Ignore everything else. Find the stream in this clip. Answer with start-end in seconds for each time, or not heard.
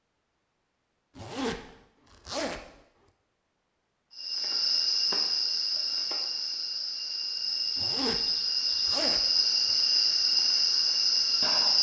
not heard.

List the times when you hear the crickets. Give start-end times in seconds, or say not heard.
4.1-11.7.